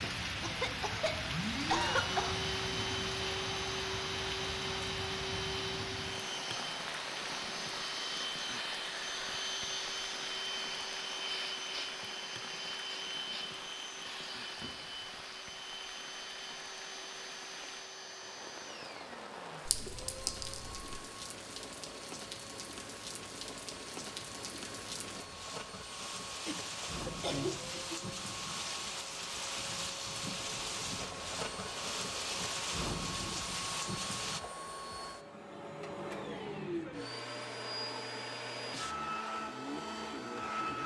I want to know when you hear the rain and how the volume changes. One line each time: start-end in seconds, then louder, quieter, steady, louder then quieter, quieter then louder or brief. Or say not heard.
0.0-34.4 quieter then louder.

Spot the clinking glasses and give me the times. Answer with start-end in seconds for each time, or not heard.
19.6-20.8.